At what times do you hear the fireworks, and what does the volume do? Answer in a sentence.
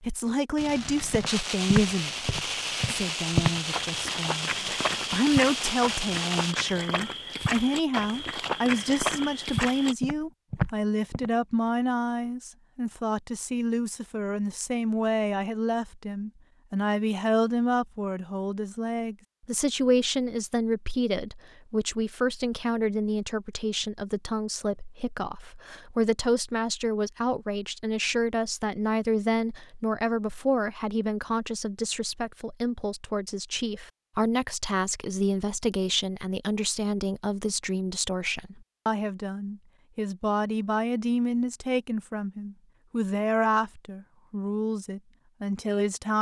The fireworks can be heard from 0.6 to 6.5 s, at a steady volume.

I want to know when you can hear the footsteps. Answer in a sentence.
You can hear the footsteps from 0.6 to 11.3 s.